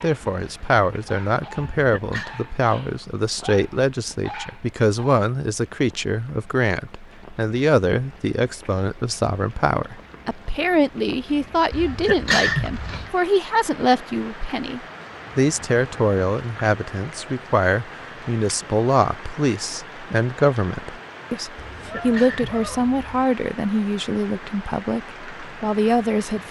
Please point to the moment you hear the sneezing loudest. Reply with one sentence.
The loudest moment of the sneezing is at 12 seconds.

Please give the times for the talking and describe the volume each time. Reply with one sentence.
The talking can be heard from 0.0 to 26.4 s, at a steady volume.